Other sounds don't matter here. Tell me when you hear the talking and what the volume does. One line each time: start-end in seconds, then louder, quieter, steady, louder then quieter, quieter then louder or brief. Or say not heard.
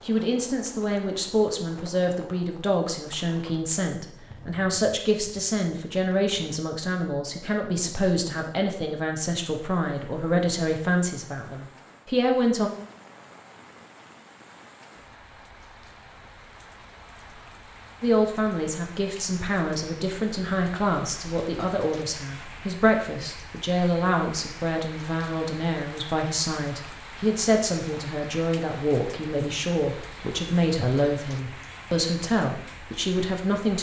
0.1-12.7 steady
18.0-33.7 steady.